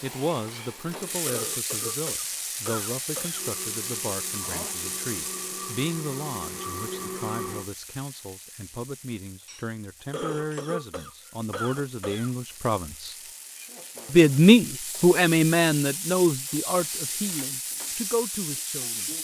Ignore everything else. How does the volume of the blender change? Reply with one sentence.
The volume of the blender goes up.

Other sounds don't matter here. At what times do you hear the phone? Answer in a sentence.
You can't hear the phone here.